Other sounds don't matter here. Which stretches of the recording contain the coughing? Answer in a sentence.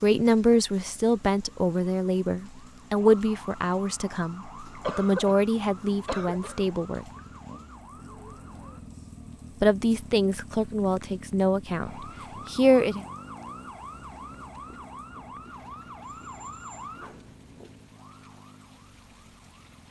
The coughing can be heard from 4.8 to 6.6 s.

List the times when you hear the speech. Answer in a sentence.
You can hear the speech from 0.0 to 7.0 s and from 9.6 to 13.1 s.